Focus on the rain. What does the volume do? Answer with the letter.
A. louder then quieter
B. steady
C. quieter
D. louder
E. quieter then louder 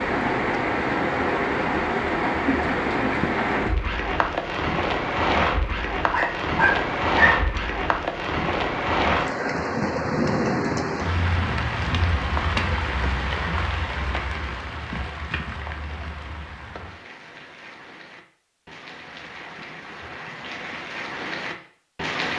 C.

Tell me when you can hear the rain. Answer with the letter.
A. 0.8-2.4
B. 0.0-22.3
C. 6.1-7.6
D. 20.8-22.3
B.